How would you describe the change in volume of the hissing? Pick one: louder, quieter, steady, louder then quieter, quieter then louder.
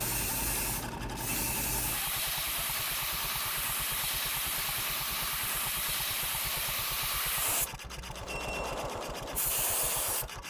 steady.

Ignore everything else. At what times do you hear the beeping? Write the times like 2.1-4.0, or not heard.
7.8-8.8.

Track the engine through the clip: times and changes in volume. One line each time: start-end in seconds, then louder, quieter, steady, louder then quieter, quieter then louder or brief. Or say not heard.
0.0-10.4 steady.